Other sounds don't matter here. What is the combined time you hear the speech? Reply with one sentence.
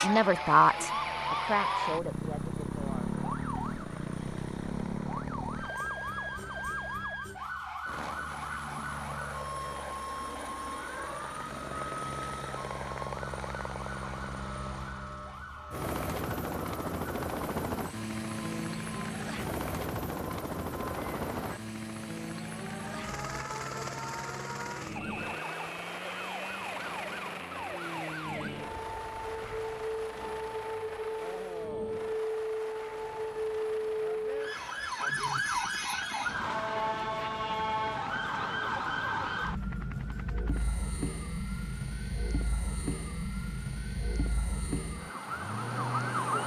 The speech can be heard for 3 seconds in total.